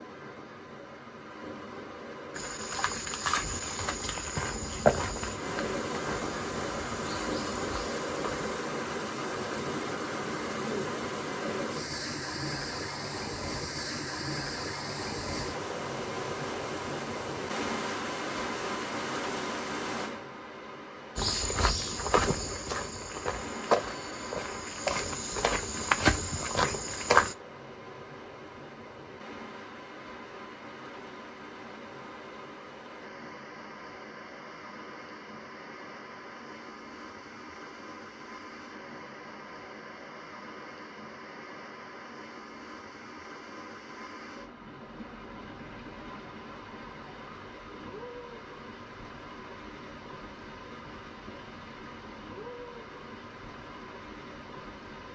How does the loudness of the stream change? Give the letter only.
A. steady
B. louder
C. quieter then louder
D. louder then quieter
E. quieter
E.